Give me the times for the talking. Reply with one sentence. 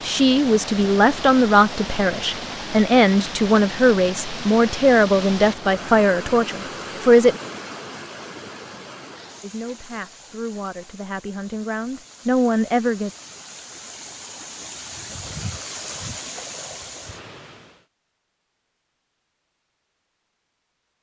The talking can be heard from 0.0 to 7.4 s and from 9.4 to 13.1 s.